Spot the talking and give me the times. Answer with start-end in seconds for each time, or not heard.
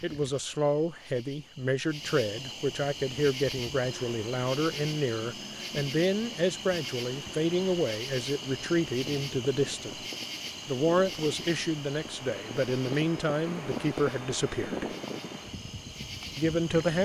0.0-10.0, 10.7-14.9, 16.4-16.9.